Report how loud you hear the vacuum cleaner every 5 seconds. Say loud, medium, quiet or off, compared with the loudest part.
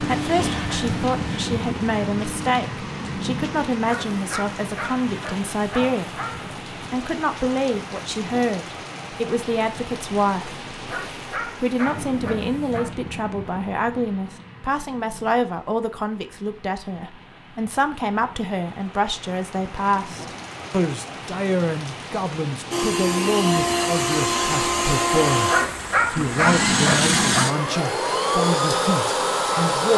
medium, off, off, off, loud, loud.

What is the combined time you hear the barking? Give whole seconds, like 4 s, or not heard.
7 s.